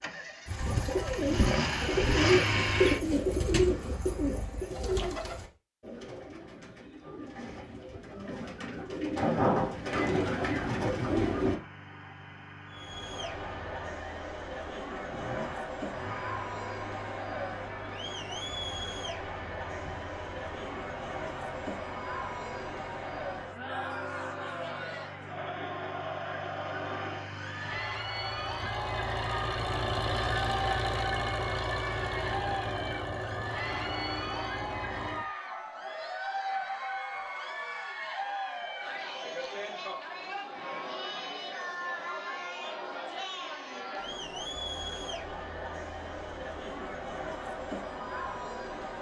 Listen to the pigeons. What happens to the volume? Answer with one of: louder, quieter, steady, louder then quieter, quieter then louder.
quieter then louder.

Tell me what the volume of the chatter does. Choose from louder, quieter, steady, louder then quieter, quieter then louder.
steady.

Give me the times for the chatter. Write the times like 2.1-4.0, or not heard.
12.7-48.9.